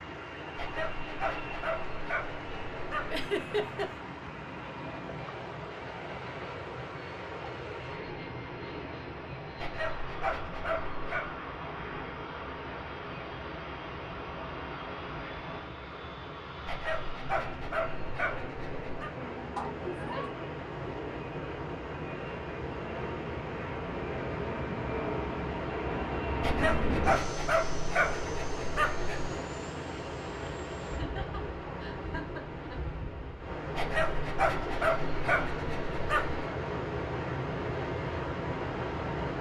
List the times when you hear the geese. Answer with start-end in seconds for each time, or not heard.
not heard.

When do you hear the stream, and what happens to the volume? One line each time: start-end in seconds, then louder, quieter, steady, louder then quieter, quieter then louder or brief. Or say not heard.
0.0-39.3 louder.